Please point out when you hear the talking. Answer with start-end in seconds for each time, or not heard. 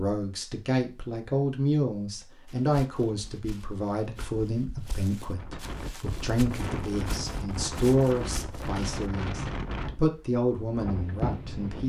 0.0-11.8.